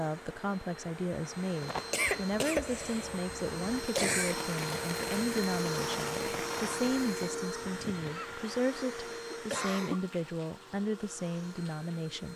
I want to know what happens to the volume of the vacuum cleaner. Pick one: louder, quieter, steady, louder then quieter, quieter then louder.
louder then quieter.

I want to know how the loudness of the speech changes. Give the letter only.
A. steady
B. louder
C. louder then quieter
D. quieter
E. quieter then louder
A.